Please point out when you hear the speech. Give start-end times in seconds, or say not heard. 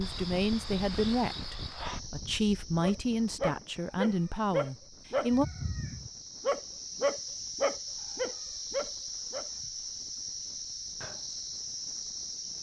0.0-5.5.